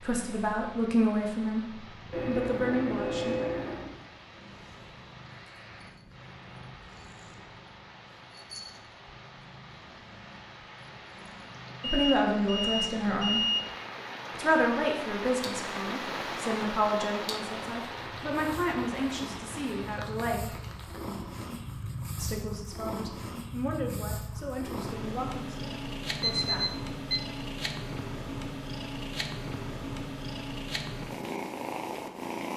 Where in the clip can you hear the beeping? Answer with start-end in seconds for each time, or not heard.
2.1-3.9, 11.8-13.7, 26.2-27.2.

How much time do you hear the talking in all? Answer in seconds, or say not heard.
15 s.